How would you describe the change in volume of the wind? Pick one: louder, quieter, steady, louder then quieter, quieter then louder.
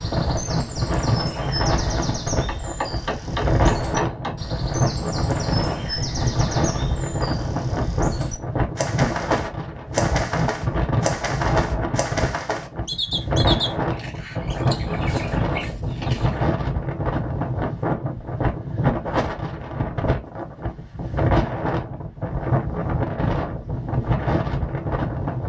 steady.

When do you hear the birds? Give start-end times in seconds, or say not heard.
0.0-16.4.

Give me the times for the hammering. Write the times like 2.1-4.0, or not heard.
2.5-4.4.